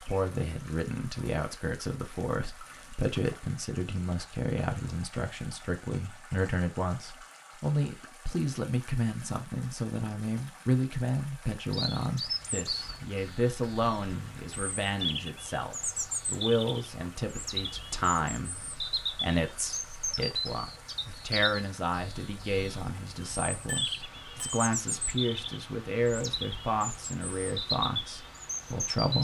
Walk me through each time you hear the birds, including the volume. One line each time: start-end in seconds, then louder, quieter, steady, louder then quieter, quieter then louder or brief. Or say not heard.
11.7-29.1 steady.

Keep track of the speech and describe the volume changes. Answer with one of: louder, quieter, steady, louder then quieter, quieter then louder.
steady.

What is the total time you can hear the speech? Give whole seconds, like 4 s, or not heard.
29 s.